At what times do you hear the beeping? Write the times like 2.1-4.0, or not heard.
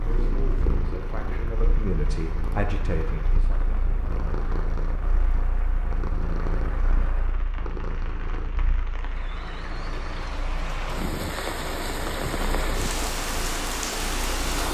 not heard.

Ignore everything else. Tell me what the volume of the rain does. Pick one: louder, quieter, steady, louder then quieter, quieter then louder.
louder.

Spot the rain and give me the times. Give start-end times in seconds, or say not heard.
0.0-14.6.